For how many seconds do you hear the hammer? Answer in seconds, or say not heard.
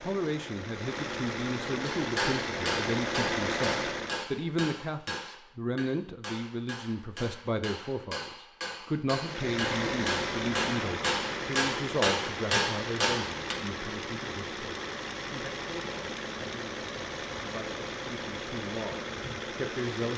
12 s.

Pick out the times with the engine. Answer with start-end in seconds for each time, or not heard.
0.0-4.2, 9.2-20.1.